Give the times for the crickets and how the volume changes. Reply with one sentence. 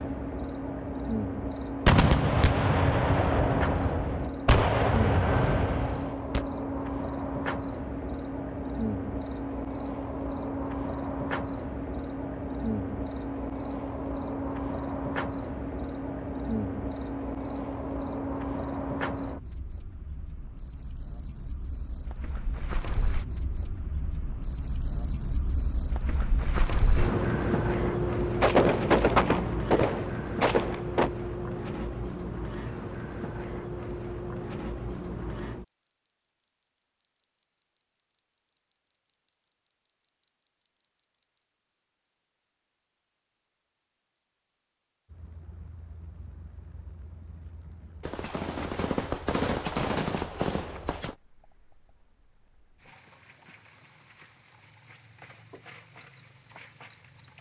You can hear the crickets from 0.0 to 57.3 s, getting quieter.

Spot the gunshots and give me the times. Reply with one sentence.
You can hear the gunshots from 1.9 to 6.5 s, from 28.4 to 31.1 s and from 48.0 to 51.1 s.